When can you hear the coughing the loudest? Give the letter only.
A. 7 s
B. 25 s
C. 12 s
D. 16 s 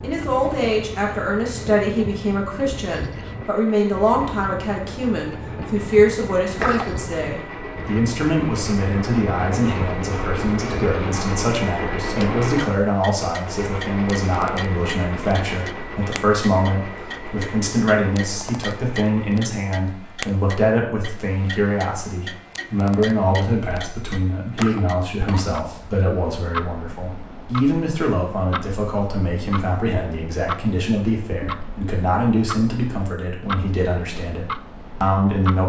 A.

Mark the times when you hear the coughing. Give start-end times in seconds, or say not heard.
6.5-7.0, 24.5-25.6.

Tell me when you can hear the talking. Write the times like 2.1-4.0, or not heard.
0.0-35.6.